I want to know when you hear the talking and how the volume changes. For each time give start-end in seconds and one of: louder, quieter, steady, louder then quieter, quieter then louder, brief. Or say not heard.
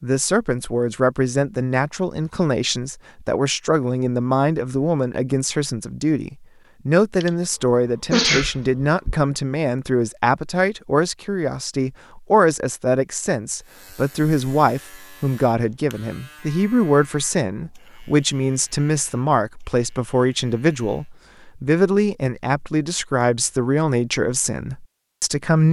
0.0-25.6 steady.